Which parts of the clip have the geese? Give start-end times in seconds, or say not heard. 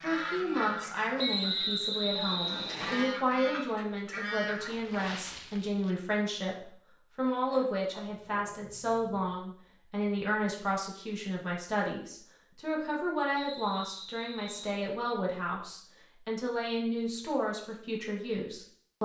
0.0-4.7.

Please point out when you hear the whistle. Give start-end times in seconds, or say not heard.
1.1-3.1, 13.3-14.8.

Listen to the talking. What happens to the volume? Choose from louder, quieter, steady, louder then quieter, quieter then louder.
steady.